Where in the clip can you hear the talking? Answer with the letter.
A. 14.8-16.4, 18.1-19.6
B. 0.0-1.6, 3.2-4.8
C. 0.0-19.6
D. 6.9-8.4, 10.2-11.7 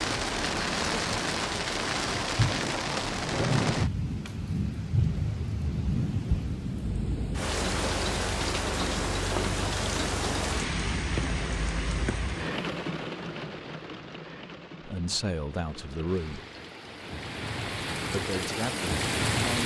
A.